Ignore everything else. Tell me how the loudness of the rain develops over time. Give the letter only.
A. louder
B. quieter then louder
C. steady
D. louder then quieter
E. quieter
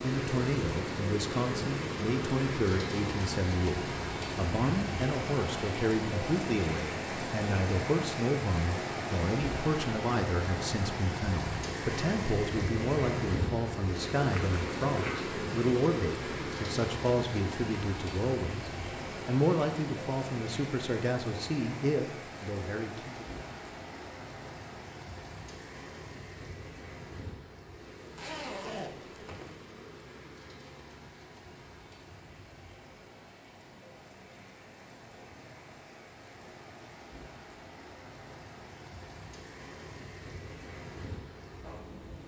E.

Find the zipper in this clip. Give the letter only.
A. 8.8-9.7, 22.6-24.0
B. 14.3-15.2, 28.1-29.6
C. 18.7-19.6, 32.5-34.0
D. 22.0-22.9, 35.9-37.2
B.